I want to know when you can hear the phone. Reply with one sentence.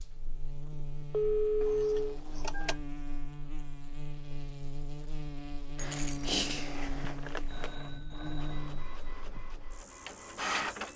You can hear the phone from 1.1 to 2.1 s and from 7.5 to 9.5 s.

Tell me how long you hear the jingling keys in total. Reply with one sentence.
The jingling keys can be heard for 3 seconds in total.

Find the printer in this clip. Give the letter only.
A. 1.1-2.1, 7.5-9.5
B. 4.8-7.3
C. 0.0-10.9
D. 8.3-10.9
D.